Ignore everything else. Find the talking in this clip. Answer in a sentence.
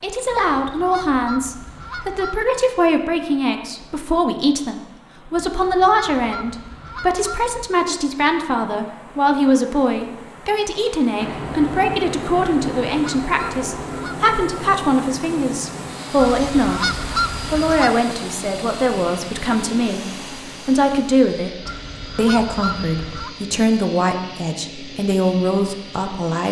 You can hear the talking from 0.0 to 26.4 s.